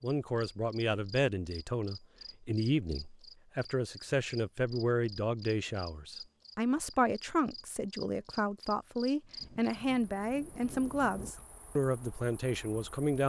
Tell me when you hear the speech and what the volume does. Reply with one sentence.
The speech can be heard from 0.0 to 13.2 s, at a steady volume.